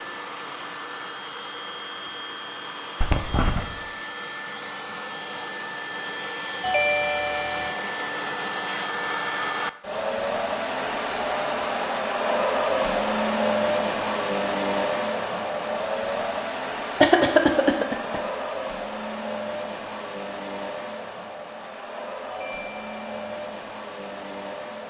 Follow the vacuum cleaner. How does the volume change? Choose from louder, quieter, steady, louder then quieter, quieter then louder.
louder then quieter.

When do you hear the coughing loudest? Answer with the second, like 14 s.
17 s.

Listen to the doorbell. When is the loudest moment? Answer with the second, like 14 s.
7 s.